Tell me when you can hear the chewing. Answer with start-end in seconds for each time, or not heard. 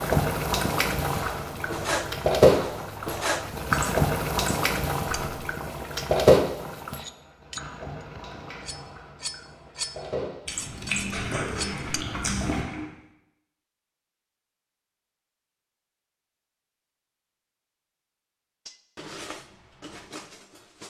10.4-12.7.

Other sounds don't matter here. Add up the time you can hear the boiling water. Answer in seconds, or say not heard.
13 s.